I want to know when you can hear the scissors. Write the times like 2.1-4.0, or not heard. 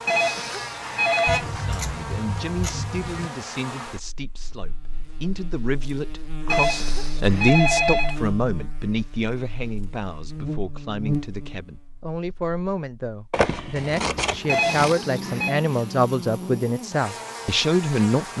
1.2-3.3, 13.3-14.9.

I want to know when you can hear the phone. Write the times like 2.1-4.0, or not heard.
0.1-1.4, 6.5-8.2, 14.4-15.6.